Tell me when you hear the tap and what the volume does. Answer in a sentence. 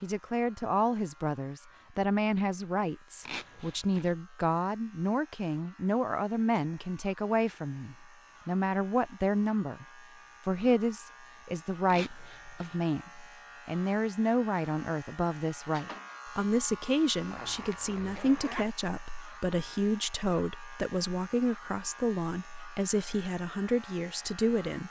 You can't hear the tap here.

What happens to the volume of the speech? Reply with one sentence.
The loudness of the speech stays about the same.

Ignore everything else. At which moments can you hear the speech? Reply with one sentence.
The speech can be heard from 0.0 to 9.8 s and from 10.4 to 24.8 s.